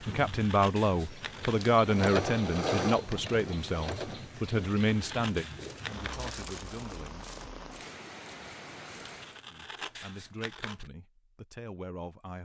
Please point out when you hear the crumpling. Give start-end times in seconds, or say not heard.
5.6-7.5.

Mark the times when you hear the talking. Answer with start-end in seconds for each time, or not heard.
0.0-7.6, 9.4-12.4.